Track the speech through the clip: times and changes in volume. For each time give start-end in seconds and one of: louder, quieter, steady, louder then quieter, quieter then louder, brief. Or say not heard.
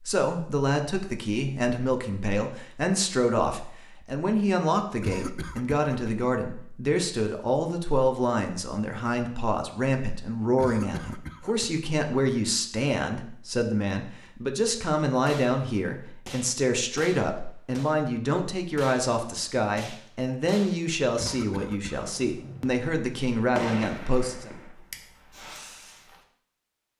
0.0-24.5 steady.